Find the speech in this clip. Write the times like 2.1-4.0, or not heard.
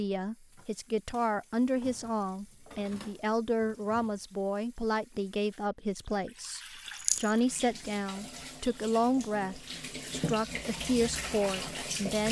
0.0-12.2.